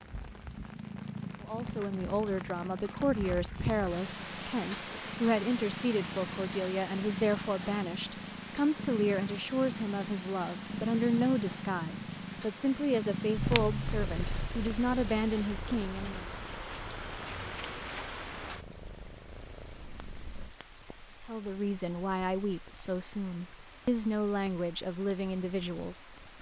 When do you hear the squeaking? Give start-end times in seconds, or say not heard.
13.3-14.5.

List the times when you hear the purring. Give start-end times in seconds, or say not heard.
0.0-20.6.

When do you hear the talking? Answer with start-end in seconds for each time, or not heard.
1.4-16.3, 21.2-26.1.